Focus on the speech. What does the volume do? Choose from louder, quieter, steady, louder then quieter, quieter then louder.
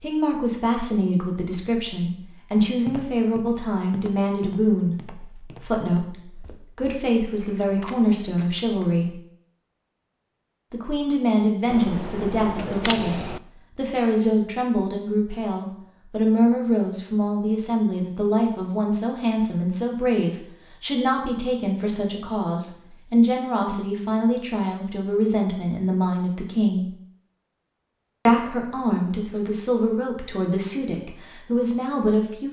steady.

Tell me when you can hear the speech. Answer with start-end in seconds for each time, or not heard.
0.0-9.2, 10.7-26.9, 28.2-32.4.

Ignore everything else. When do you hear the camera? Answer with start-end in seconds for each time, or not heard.
11.7-13.4.